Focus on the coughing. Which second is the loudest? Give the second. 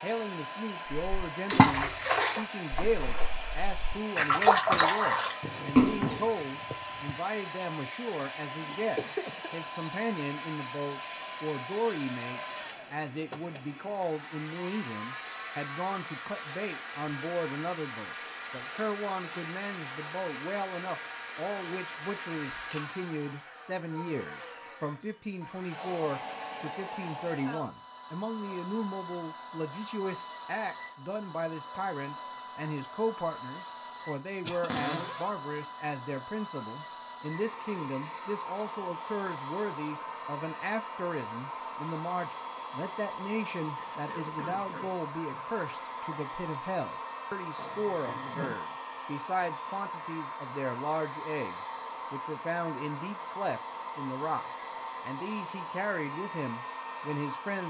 9 s.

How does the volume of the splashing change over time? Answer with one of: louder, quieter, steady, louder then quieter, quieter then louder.
quieter then louder.